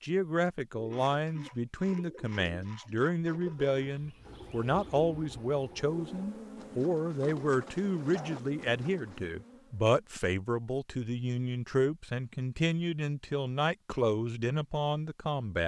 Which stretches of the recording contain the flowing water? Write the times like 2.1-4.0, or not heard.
not heard.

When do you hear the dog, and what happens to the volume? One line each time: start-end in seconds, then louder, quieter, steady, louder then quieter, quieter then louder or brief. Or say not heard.
not heard.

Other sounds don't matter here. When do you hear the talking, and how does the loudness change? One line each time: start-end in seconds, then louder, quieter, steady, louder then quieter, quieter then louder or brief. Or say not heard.
0.0-15.6 steady.